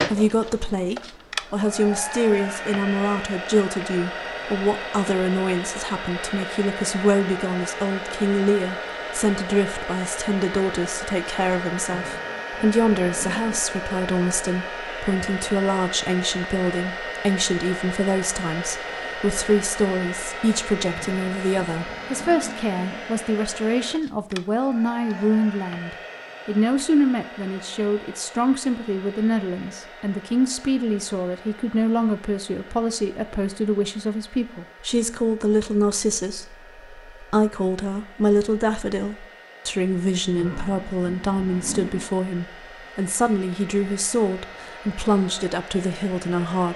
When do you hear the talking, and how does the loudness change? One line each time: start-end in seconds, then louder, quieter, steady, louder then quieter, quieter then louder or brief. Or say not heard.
0.0-46.7 steady.